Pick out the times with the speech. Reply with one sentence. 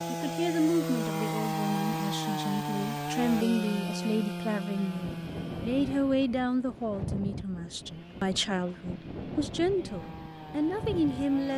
The speech can be heard from 0.1 to 11.5 s.